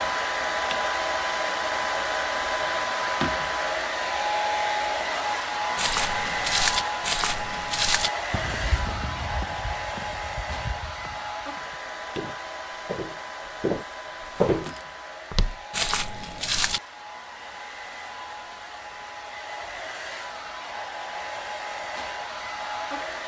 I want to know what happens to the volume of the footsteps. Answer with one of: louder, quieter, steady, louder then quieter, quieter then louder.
quieter then louder.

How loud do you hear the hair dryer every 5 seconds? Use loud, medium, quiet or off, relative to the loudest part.
loud, loud, medium, quiet, medium.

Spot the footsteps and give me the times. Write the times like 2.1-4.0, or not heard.
5.8-16.8.